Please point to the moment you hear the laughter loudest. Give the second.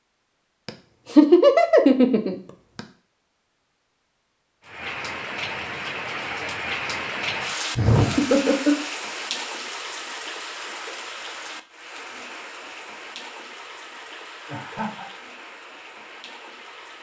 1 s.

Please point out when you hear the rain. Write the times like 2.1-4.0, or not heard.
4.6-16.9.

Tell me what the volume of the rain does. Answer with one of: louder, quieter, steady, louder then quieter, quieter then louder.
quieter.